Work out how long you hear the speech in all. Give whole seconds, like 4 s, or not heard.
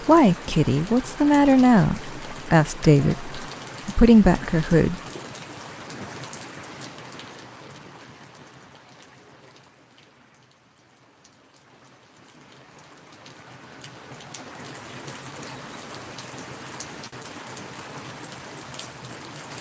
5 s.